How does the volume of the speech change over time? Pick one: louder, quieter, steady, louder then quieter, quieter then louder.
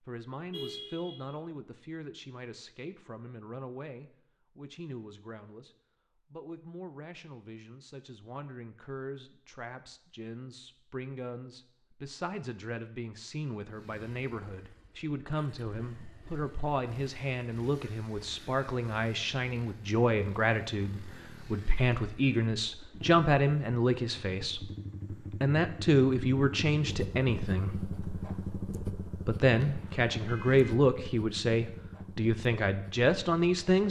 louder.